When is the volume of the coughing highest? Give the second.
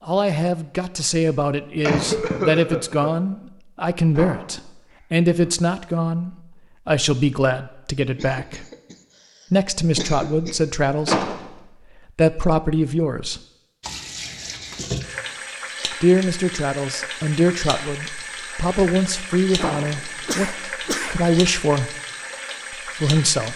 2 s.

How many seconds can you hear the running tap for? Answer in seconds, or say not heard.
10 s.